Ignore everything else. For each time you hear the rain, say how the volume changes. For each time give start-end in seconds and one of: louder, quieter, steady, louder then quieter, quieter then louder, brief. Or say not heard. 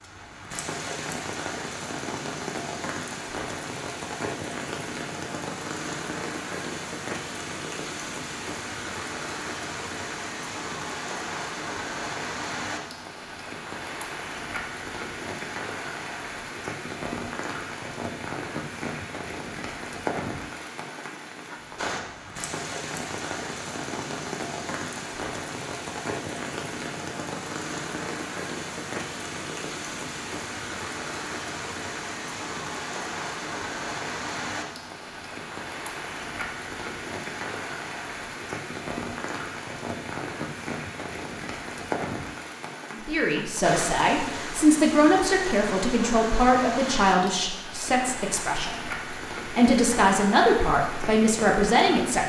0.0-52.2 steady.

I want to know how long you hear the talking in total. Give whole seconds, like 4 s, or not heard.
9 s.